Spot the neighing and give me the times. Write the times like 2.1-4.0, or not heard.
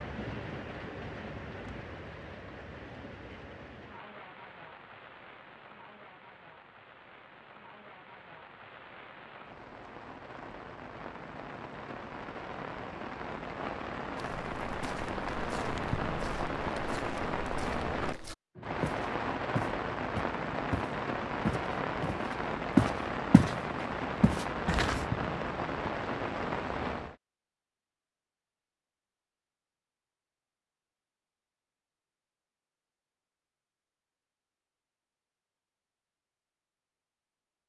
not heard.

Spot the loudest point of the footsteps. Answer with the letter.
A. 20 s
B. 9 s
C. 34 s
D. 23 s
D.